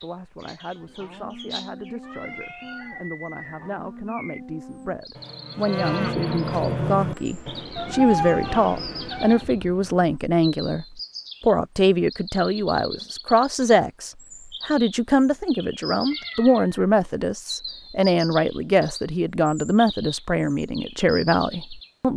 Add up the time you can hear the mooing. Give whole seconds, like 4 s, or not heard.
7 s.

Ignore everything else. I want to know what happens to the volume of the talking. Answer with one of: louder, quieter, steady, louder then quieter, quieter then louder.
louder.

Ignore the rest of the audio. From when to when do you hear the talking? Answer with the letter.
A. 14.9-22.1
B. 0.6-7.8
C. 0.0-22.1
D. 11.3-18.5
C.